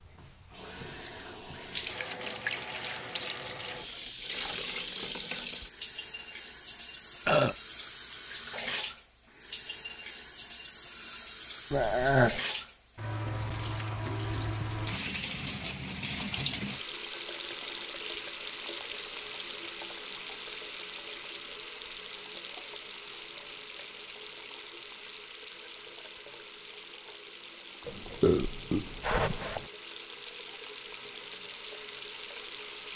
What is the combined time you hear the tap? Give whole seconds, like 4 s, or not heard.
33 s.